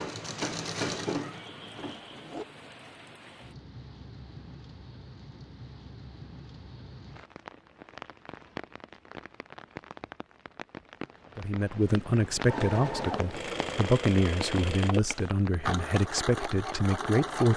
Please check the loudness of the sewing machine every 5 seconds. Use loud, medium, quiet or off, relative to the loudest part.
loud, off, loud, loud.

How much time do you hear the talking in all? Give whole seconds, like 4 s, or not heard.
6 s.